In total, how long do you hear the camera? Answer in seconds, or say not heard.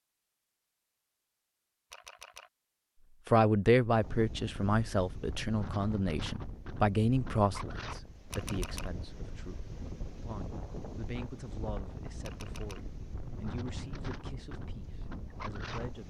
2 s.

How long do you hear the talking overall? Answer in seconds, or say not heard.
13 s.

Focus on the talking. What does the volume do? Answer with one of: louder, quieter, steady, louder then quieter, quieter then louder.
quieter.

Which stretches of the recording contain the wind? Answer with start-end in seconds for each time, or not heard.
4.0-16.0.